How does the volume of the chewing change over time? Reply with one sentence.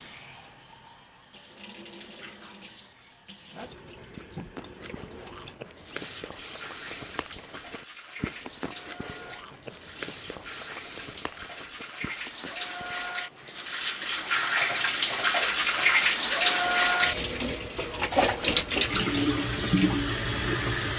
The volume of the chewing goes down.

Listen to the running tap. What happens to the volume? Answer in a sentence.
The loudness of the running tap goes up.